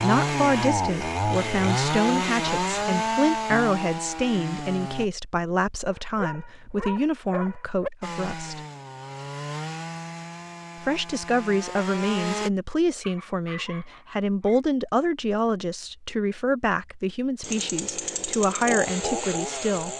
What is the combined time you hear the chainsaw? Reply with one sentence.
You can hear the chainsaw for 12 seconds altogether.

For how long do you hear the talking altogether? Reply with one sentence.
You can hear the talking for 18 seconds altogether.